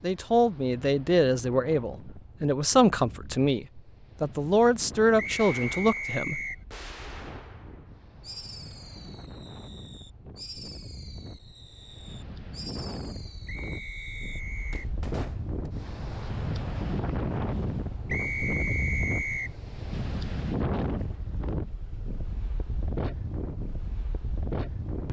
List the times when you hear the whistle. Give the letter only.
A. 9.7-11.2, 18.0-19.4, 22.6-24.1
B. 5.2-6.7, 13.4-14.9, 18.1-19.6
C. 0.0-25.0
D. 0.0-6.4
B.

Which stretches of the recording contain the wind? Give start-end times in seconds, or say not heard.
0.0-25.0.